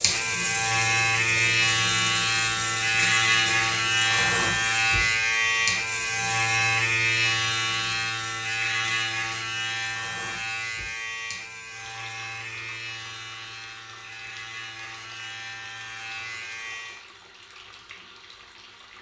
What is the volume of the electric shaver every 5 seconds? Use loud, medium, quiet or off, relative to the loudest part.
loud, loud, quiet, quiet.